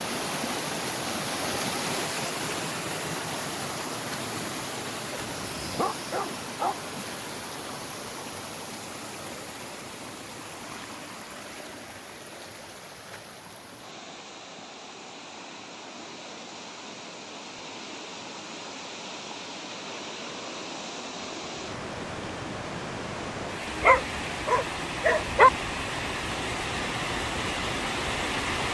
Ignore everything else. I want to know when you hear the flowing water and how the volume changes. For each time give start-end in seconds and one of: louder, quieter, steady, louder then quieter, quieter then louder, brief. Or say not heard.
0.0-28.6 quieter then louder.